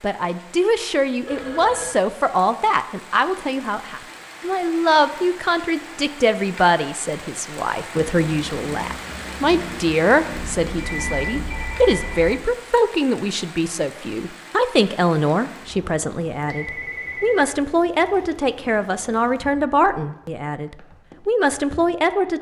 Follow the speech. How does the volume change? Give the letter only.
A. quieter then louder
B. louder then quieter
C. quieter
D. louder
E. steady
E.